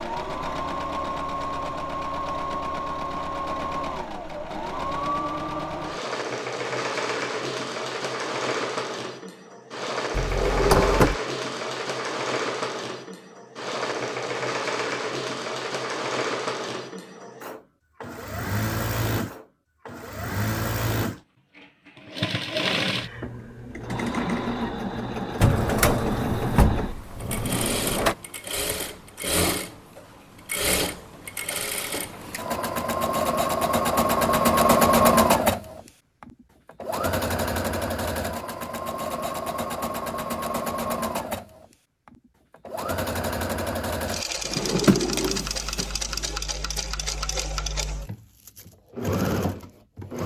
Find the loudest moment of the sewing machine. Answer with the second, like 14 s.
35 s.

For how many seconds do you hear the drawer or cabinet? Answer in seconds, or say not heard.
5 s.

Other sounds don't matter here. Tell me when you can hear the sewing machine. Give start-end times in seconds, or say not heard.
0.0-50.2.